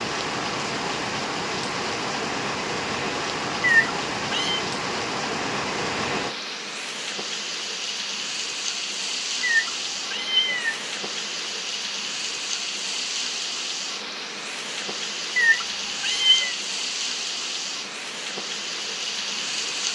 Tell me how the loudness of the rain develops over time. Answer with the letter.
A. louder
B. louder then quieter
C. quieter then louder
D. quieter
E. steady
E.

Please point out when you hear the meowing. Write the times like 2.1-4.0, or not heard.
3.9-4.6, 9.4-10.8, 15.3-16.6.